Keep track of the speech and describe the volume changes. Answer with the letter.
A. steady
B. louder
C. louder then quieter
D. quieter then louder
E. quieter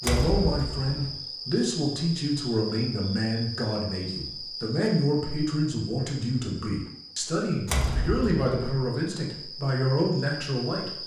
A.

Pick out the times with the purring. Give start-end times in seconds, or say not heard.
not heard.